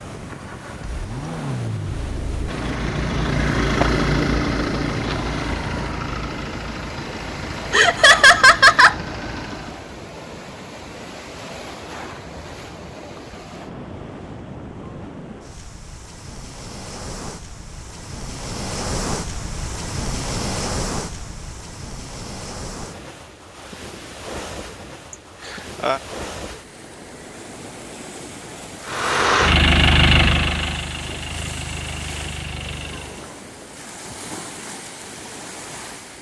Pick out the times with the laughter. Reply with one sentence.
The laughter can be heard from 7.7 to 8.9 s and from 25.4 to 26.0 s.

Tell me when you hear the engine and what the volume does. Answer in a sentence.
The engine can be heard from 0.2 to 9.9 s, getting louder then quieter; and from 28.9 to 33.2 s, getting quieter.